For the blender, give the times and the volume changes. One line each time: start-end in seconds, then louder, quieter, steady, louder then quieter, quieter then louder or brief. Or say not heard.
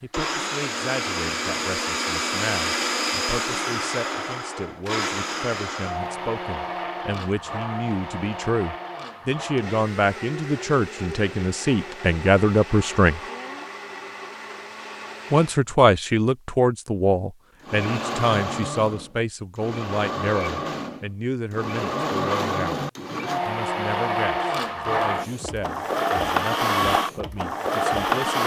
0.1-15.7 quieter
17.6-28.4 louder.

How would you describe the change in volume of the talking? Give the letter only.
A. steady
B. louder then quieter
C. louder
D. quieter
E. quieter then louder
B.